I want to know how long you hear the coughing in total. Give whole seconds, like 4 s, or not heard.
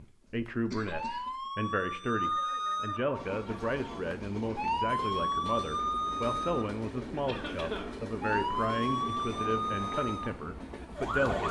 2 s.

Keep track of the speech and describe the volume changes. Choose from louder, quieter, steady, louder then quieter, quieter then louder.
steady.